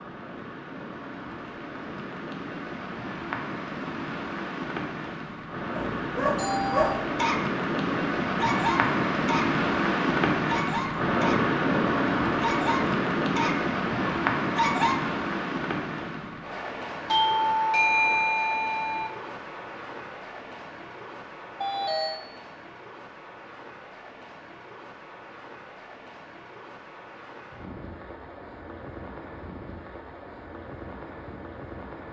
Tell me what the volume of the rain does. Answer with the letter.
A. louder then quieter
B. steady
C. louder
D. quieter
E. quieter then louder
A.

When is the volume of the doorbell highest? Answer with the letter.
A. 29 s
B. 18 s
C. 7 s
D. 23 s
B.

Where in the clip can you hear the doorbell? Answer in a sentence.
The doorbell can be heard from 6.3 to 7.0 s, from 17.1 to 19.1 s and from 21.6 to 22.2 s.